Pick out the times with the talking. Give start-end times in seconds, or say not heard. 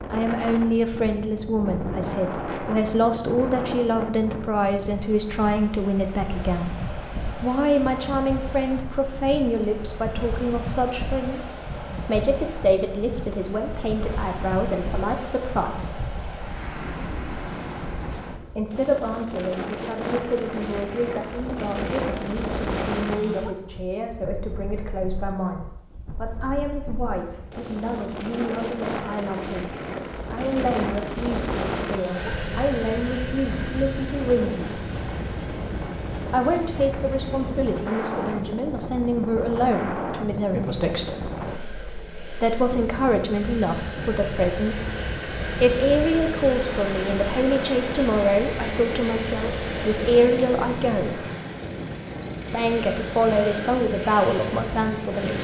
0.0-6.8, 7.3-16.1, 18.6-34.8, 36.2-41.4, 42.4-51.2, 52.5-55.3.